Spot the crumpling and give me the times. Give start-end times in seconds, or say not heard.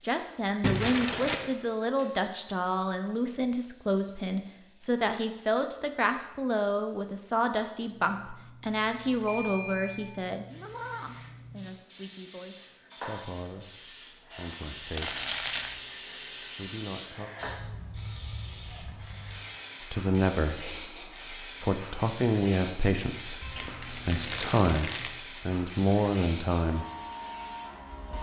0.6-1.5, 14.8-15.8, 23.6-25.1.